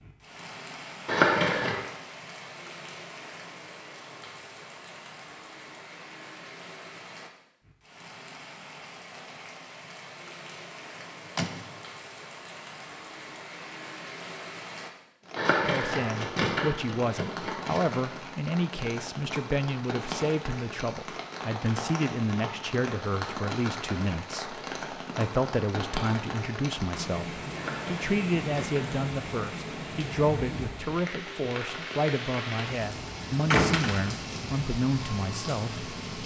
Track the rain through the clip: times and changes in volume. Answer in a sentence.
The rain can be heard from 0.0 to 36.2 s, getting louder.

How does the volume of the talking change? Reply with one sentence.
The volume of the talking stays about the same.